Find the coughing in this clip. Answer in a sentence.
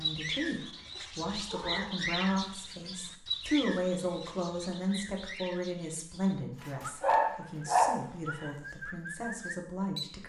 You can't hear the coughing here.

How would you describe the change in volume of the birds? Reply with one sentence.
The volume of the birds goes down, then up.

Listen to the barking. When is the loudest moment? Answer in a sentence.
The volume of the barking peaks at 8 seconds.